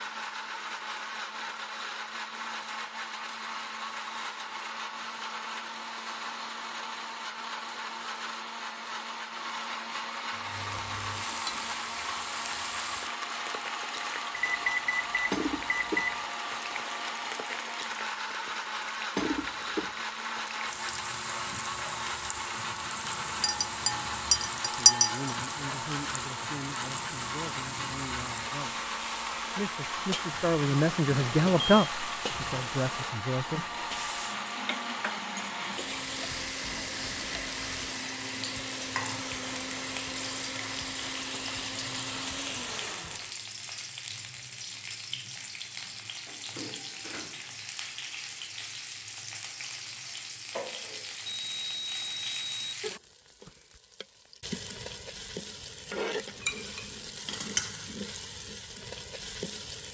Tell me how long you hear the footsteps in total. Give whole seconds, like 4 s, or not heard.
not heard.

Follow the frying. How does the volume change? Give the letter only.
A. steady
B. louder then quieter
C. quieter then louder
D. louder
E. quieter
A.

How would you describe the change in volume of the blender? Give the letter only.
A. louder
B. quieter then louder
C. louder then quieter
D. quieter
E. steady
E.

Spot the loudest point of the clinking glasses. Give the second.
25 s.